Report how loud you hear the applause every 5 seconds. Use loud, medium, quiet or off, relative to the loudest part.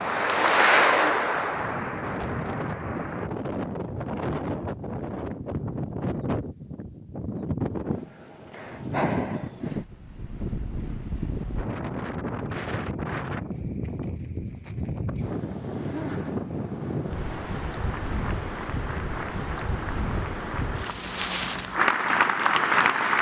loud, off, off, quiet, loud.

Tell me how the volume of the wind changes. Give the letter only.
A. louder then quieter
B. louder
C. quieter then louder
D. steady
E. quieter
D.